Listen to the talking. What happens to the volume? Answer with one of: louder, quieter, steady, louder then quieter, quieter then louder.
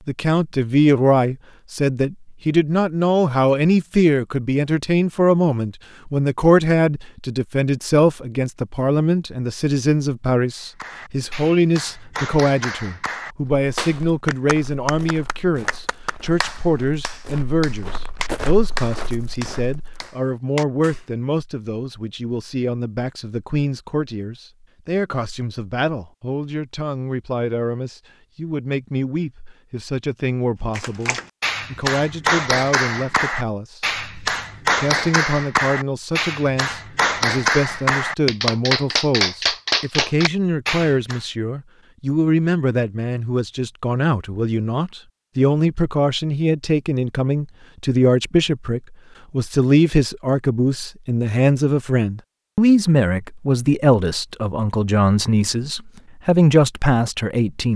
quieter then louder.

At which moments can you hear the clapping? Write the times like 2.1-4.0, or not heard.
10.6-21.1, 30.8-41.2.